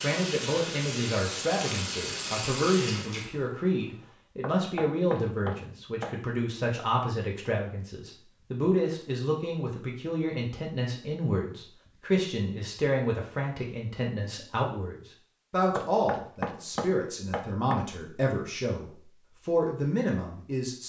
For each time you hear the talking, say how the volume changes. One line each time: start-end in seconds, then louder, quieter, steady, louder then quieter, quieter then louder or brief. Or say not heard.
0.0-20.8 steady.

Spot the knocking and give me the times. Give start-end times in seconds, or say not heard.
4.4-6.2, 15.8-17.9.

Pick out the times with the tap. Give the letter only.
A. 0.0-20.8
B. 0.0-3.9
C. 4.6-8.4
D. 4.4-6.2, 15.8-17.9
B.